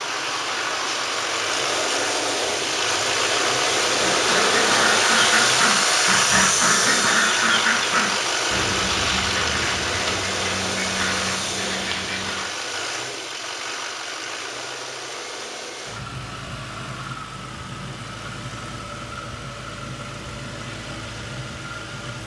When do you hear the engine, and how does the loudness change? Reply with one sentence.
You can hear the engine from 0.0 to 22.2 s, getting quieter.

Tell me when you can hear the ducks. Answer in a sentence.
The ducks can be heard from 4.0 to 12.5 s.